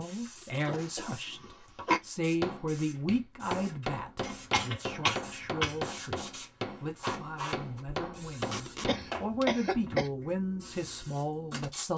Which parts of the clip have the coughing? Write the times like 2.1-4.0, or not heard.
0.7-2.0, 4.2-5.8, 8.8-10.1.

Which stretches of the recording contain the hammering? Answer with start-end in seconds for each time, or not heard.
2.3-9.4.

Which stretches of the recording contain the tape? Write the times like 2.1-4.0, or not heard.
0.1-0.9, 8.4-8.9.